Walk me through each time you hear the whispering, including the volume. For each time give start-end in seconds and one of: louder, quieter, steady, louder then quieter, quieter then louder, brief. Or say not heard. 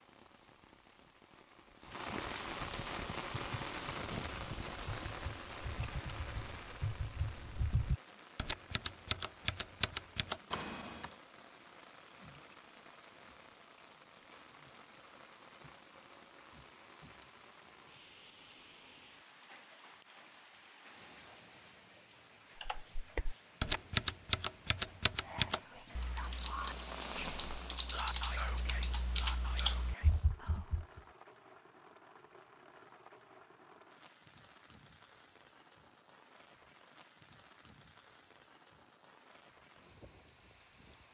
25.1-30.9 louder then quieter.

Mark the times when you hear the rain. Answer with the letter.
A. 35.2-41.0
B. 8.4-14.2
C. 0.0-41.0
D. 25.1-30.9
C.